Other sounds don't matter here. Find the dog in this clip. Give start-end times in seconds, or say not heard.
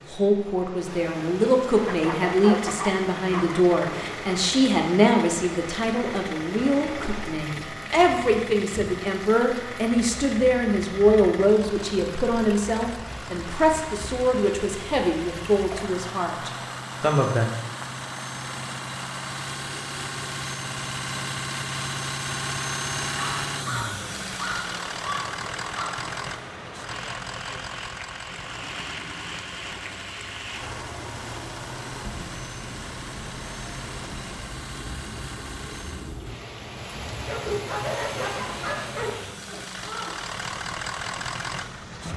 1.9-3.6, 23.1-26.0, 37.2-39.1.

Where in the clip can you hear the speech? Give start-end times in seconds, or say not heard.
0.0-17.5.